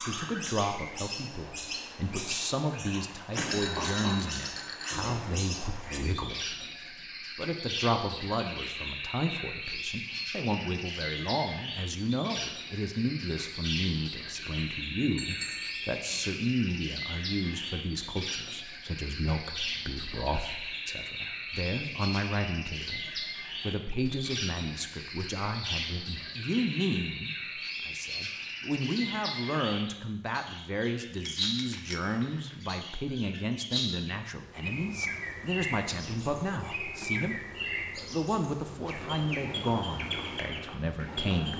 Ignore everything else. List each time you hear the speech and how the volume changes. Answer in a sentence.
You can hear the speech from 0.0 to 41.5 s, at a steady volume.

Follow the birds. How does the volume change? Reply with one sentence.
The loudness of the birds stays about the same.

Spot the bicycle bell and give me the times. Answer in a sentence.
You can hear the bicycle bell from 3.4 to 5.3 s, from 15.2 to 16.2 s and from 31.2 to 32.6 s.